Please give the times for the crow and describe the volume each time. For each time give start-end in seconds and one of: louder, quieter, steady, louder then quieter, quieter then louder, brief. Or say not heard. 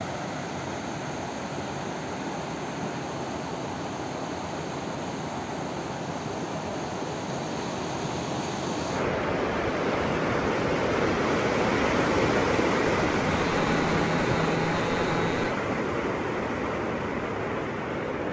not heard.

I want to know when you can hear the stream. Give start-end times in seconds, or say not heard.
0.0-18.2.